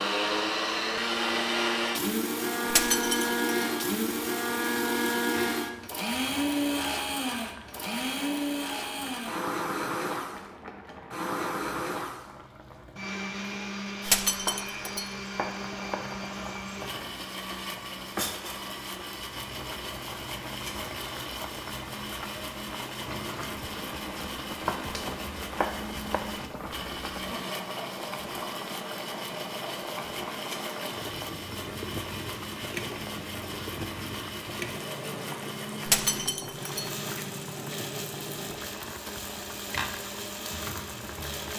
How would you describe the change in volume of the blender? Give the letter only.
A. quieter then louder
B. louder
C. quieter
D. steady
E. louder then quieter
C.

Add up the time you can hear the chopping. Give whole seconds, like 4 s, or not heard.
3 s.